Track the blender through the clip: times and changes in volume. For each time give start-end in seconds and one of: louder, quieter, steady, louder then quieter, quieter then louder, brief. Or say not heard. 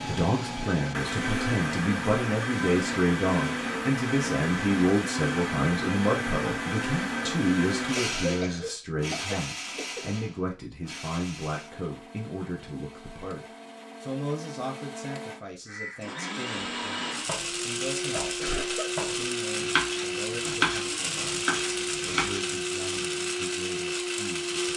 0.0-24.7 quieter then louder.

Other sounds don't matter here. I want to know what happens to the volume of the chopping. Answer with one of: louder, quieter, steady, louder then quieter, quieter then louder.
louder then quieter.